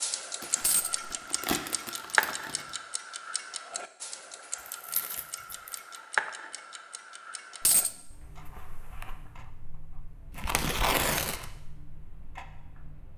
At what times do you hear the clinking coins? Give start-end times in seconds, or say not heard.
0.6-1.1, 7.6-8.2.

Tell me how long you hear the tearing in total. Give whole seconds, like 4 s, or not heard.
5 s.